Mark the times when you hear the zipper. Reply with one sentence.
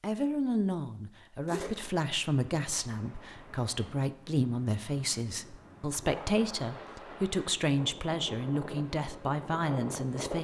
The zipper can be heard from 1.4 to 1.9 s.